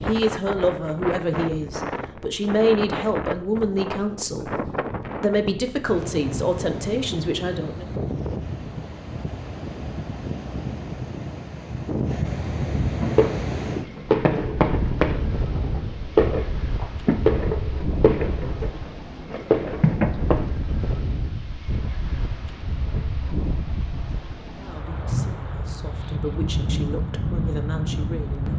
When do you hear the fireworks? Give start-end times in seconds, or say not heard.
12.9-20.5.